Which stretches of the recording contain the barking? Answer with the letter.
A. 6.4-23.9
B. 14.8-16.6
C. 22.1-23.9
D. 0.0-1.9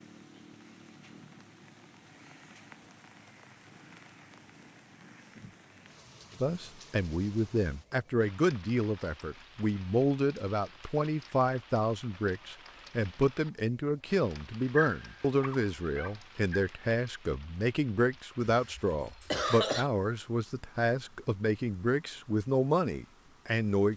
B.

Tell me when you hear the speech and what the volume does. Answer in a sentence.
The speech can be heard from 6.4 to 23.9 s, at a steady volume.